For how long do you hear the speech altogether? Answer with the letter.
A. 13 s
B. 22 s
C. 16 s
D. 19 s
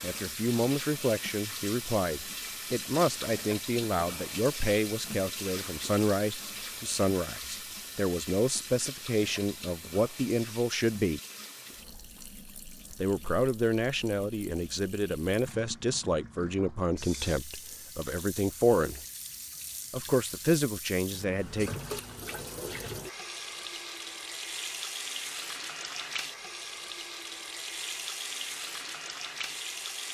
D.